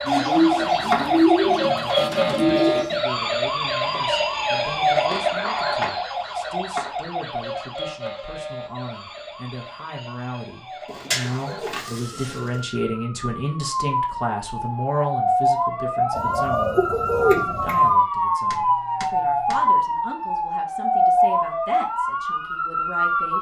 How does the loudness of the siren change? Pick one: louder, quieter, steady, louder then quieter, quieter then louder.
quieter then louder.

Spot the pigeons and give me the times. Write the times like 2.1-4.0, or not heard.
0.1-2.9, 10.9-12.6, 16.1-17.9.